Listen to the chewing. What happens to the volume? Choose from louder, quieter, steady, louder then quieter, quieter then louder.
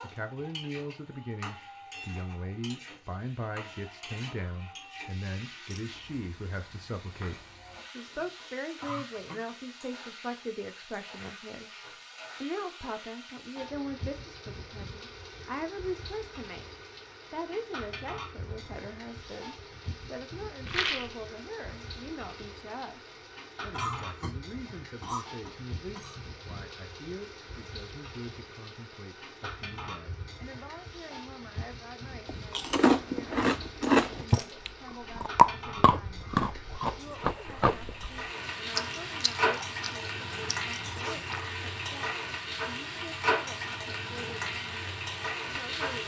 quieter.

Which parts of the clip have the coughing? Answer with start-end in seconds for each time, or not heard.
8.8-9.4, 23.7-26.2.